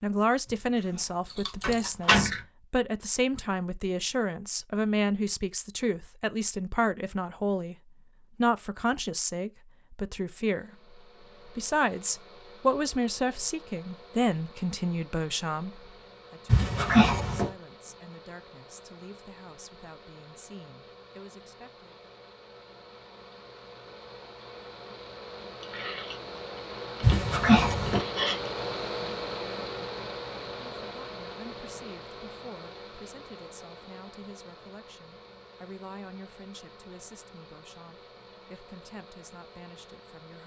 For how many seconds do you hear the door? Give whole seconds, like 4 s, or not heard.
3 s.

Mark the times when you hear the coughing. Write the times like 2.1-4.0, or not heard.
not heard.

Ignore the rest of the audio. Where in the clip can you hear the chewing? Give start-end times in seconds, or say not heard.
0.8-2.4, 25.6-28.5.